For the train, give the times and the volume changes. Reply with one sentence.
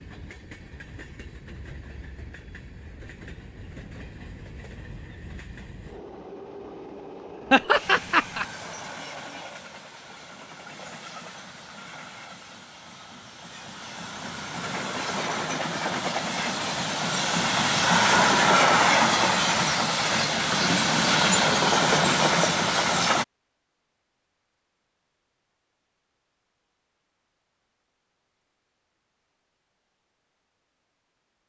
You can hear the train from 0.0 to 23.2 s, getting louder.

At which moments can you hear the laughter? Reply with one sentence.
You can hear the laughter from 7.5 to 8.4 s.